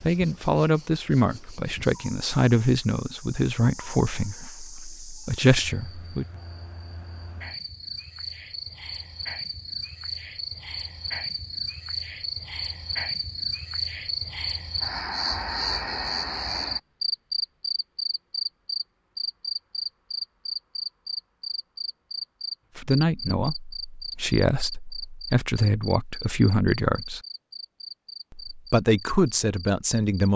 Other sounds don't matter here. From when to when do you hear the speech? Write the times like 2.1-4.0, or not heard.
0.0-6.2, 22.8-27.2, 28.3-30.3.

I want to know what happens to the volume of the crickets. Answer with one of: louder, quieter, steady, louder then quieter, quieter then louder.
louder then quieter.